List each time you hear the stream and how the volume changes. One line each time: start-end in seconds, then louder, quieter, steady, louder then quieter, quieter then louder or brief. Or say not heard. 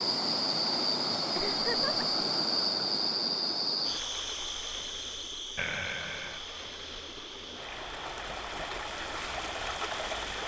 0.0-10.4 quieter then louder.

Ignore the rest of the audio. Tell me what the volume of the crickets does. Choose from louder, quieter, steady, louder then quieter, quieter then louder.
quieter.